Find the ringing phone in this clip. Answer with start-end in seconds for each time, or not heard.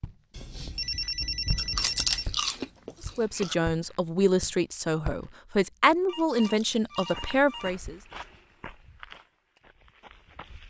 0.3-2.2, 6.0-7.7.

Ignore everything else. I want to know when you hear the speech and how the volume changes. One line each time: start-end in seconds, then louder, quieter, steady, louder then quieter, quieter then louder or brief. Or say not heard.
3.0-8.0 steady.